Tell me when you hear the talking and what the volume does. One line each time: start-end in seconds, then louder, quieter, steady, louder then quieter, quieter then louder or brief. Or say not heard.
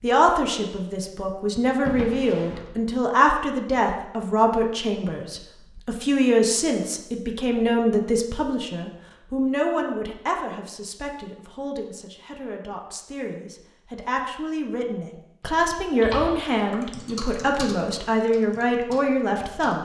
0.0-19.7 quieter then louder.